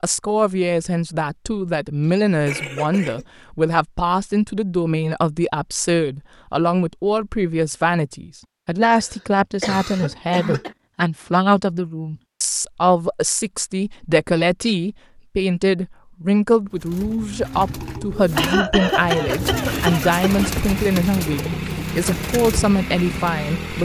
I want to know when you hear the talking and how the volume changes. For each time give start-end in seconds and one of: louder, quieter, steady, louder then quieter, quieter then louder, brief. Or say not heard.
0.0-23.8 steady.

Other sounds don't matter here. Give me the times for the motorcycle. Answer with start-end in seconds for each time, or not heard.
16.9-23.8.